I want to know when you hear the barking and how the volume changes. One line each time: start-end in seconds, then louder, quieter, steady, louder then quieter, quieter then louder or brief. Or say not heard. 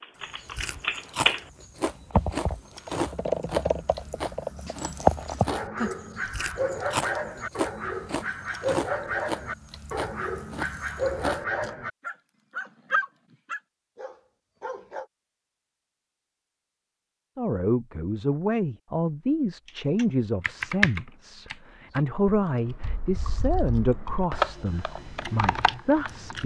4.5-15.1 steady.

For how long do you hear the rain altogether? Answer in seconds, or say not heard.
not heard.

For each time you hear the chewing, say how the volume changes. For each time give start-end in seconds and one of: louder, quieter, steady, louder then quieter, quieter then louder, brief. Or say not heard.
0.2-11.8 steady
24.9-26.4 brief.